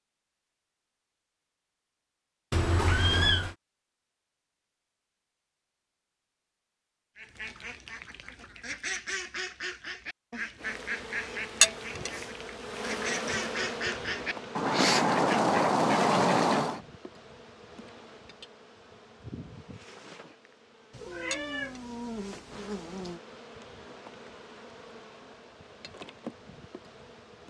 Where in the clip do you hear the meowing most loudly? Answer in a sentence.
The volume of the meowing peaks at 3 seconds.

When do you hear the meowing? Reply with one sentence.
The meowing can be heard from 2.5 to 3.5 s and from 20.9 to 23.2 s.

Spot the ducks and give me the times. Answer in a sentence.
You can hear the ducks from 7.2 to 16.8 s.